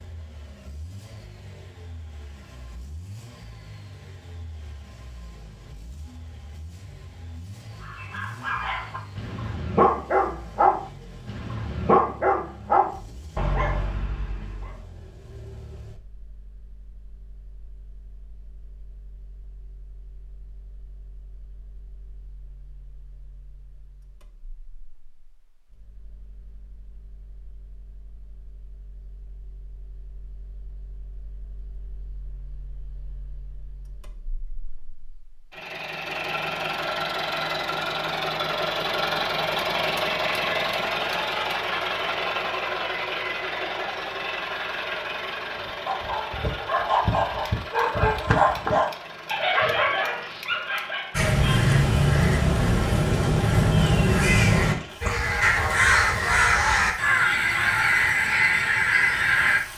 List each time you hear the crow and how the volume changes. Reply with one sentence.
You can hear the crow from 51.1 to 59.6 s, at a steady volume.